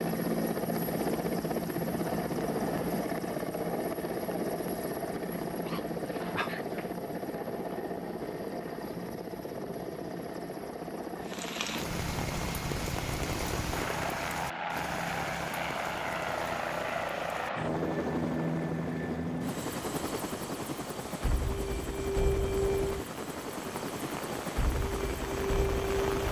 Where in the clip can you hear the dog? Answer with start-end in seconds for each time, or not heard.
5.5-7.0.